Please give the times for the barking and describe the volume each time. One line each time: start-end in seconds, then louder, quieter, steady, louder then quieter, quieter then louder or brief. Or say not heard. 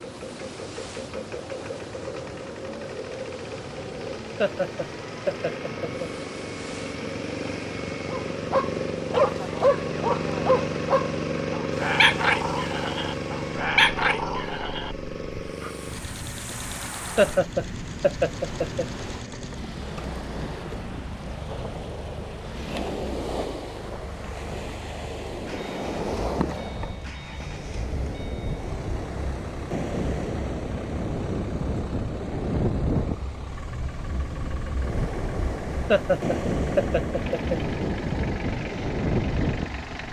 8.1-15.7 quieter.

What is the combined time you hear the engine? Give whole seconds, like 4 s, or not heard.
40 s.